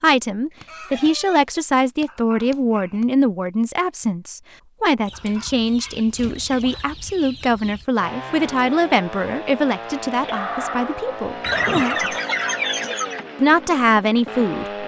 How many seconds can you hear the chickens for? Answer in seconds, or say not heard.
7 s.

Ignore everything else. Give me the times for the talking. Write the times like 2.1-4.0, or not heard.
0.0-12.0, 13.3-14.8.